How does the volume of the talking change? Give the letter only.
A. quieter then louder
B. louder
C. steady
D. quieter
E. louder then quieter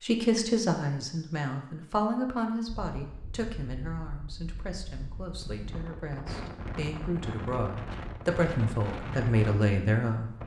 A.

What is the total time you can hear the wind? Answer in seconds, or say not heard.
8 s.